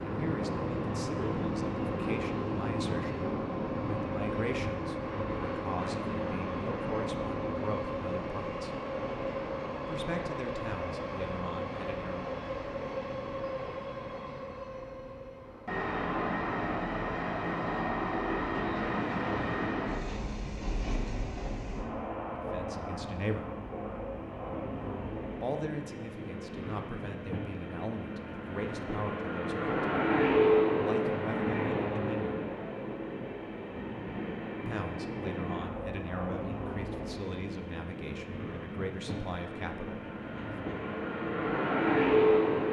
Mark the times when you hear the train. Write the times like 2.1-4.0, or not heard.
0.0-42.6.